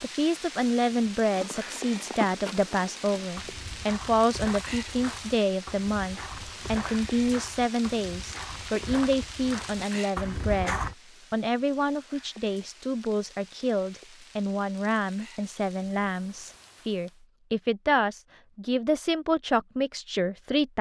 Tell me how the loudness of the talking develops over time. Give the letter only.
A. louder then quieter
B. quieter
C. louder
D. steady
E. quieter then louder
D.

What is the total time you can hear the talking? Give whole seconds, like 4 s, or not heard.
21 s.